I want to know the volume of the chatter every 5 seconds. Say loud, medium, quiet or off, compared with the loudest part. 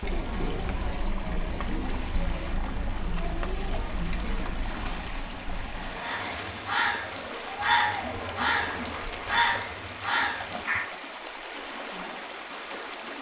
loud, loud, off.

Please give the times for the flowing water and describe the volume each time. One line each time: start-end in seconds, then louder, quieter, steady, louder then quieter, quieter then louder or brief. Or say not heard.
0.0-13.1 steady.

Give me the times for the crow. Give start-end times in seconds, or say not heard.
6.0-10.9.